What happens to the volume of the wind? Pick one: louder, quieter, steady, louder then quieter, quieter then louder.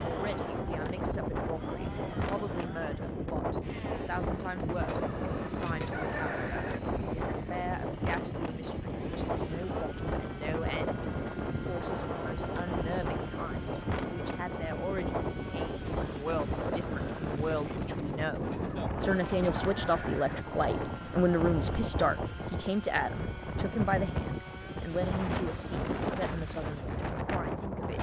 steady.